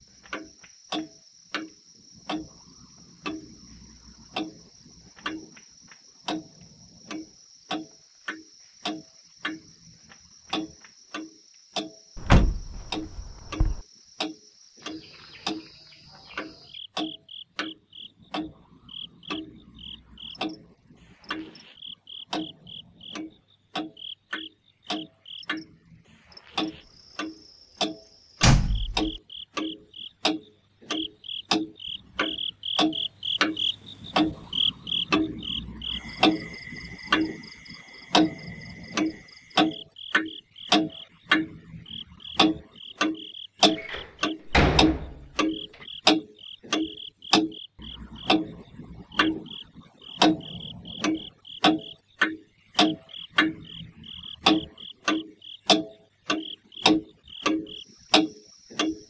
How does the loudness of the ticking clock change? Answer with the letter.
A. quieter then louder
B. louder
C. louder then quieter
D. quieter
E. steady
B.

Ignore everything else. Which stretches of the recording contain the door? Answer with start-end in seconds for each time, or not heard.
12.2-13.8, 28.4-29.1, 43.8-45.9.